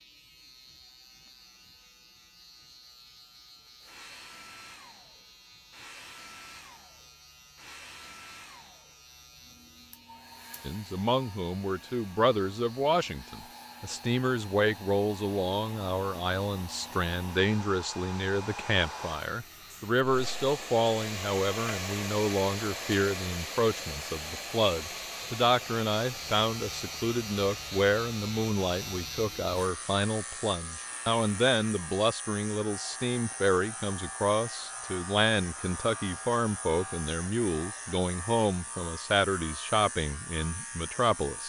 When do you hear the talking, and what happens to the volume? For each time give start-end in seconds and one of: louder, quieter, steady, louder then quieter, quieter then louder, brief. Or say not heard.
10.6-41.4 steady.